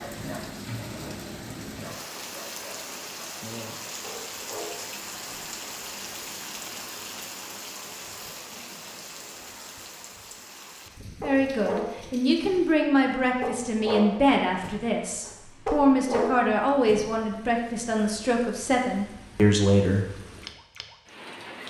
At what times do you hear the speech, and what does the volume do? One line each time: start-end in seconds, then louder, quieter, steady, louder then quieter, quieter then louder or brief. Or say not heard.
11.2-20.1 steady.